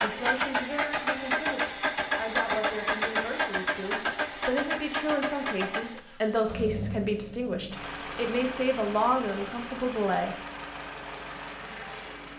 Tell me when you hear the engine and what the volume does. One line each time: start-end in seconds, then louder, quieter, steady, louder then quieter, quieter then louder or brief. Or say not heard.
0.0-12.3 quieter.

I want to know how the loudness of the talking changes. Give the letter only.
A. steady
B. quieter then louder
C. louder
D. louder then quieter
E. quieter
C.